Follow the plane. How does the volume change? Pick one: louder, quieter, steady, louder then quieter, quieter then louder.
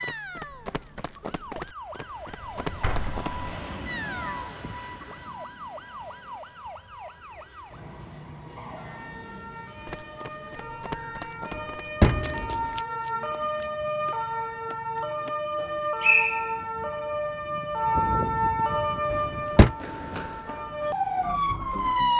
quieter.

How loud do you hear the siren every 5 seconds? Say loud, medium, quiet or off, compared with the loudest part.
quiet, quiet, medium, loud, loud.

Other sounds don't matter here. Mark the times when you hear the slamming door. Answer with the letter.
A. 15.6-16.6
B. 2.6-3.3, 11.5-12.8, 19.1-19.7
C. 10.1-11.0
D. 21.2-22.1
B.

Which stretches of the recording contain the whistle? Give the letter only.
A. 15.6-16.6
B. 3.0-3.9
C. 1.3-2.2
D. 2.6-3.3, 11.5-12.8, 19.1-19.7
A.